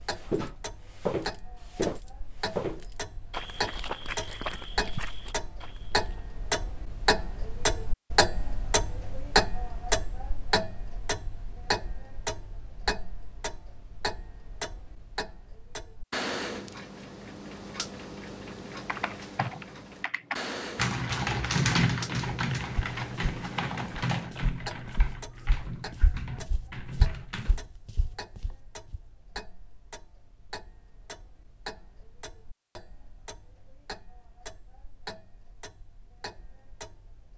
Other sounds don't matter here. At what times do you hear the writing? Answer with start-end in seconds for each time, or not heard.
not heard.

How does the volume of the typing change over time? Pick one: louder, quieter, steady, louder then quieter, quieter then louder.
louder then quieter.